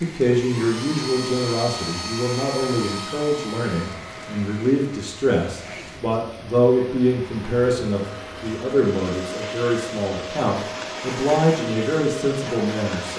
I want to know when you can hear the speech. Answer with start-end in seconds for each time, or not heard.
0.0-13.1.